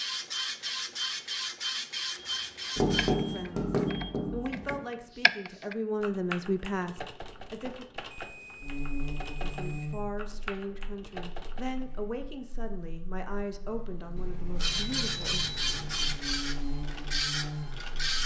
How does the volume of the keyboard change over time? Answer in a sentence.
The loudness of the keyboard goes up, then down.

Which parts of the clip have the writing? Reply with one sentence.
You can hear the writing from 2.8 to 4.8 s.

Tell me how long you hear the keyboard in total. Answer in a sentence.
You can hear the keyboard for 9 seconds altogether.